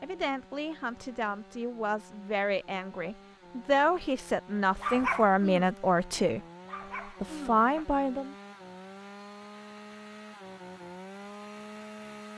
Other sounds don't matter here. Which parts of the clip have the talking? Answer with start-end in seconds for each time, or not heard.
0.0-6.4, 7.2-8.3.